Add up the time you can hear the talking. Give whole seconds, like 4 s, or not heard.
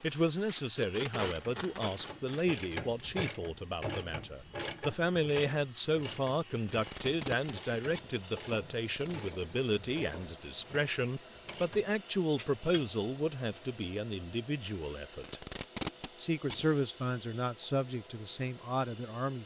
19 s.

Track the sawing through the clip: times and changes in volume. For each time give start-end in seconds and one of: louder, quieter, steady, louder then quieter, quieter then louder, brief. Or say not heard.
not heard.